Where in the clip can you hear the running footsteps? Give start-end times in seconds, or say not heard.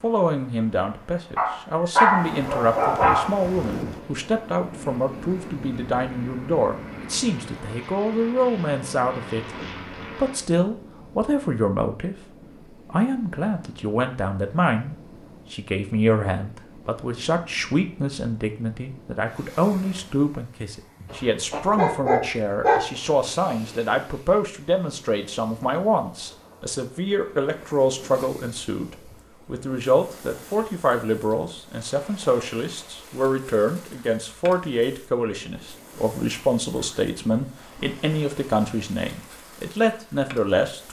not heard.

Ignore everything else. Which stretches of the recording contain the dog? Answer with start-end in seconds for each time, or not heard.
1.4-3.4, 21.1-22.8.